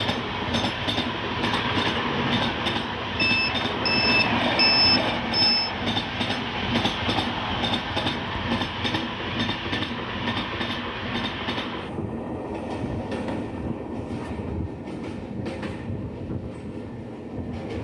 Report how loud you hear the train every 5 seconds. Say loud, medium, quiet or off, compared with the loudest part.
loud, loud, medium, medium.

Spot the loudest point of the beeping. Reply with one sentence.
The volume of the beeping peaks at 5 seconds.